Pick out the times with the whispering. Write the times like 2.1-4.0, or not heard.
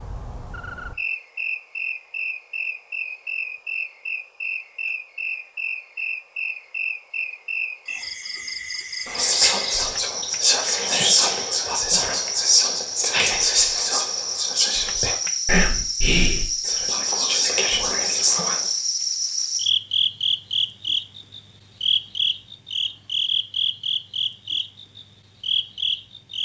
9.1-18.8.